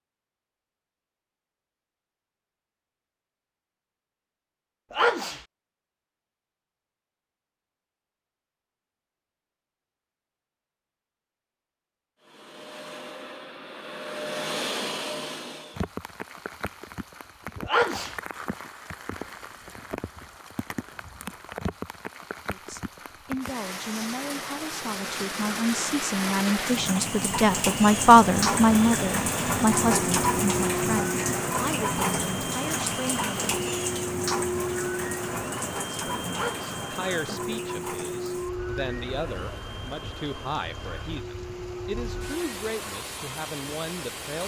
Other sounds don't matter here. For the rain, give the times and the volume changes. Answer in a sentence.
The rain can be heard from 15.7 to 44.4 s, getting louder then quieter.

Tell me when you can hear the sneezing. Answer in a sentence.
The sneezing can be heard from 4.9 to 5.4 s, from 17.6 to 18.1 s and from 36.3 to 36.8 s.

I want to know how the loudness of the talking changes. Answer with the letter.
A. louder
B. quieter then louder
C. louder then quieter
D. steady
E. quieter
C.